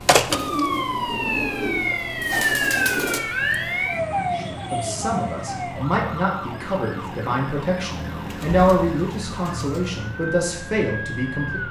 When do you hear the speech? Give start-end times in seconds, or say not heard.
4.3-11.6.